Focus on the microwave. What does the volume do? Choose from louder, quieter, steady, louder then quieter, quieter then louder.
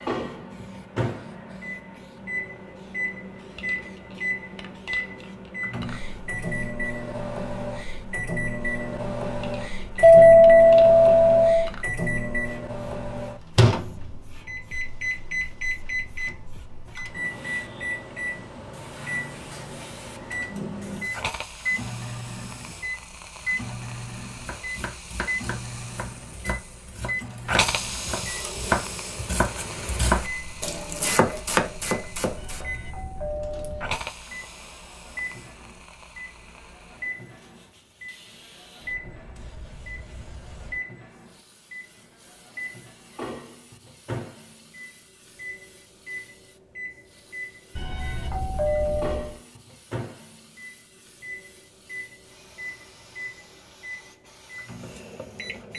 quieter.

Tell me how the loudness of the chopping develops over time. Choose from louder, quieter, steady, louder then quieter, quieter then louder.
louder.